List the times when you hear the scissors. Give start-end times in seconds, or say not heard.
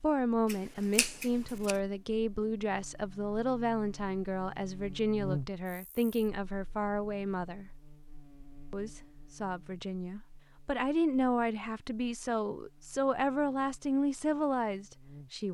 0.5-1.8.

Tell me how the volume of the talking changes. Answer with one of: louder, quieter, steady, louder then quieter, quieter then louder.
steady.